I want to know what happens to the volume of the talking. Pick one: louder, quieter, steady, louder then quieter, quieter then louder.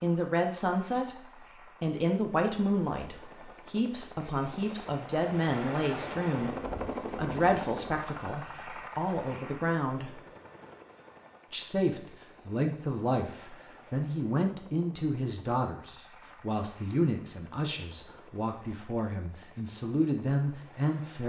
steady.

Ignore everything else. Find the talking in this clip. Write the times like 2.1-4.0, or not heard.
0.0-6.5, 7.2-10.2, 11.5-21.2.